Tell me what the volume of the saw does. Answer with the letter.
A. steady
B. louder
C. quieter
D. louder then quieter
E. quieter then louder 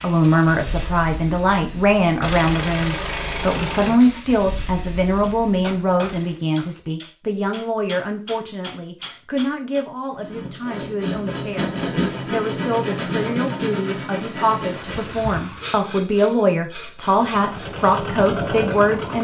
C.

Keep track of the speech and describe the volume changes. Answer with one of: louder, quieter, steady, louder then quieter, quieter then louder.
quieter then louder.